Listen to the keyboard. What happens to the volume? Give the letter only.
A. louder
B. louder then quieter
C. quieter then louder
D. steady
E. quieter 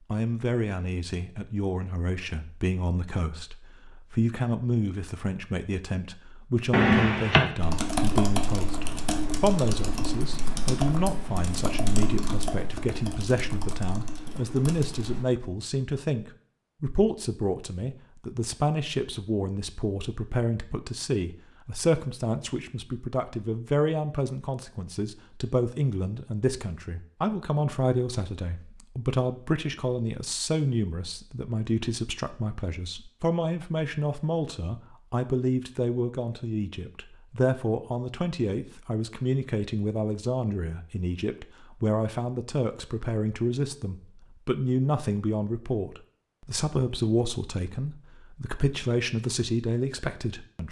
E.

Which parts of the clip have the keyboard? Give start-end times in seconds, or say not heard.
7.5-15.2.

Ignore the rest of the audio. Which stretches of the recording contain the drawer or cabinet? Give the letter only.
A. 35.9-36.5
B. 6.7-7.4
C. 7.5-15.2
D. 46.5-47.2
B.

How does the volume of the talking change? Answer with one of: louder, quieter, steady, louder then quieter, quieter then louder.
steady.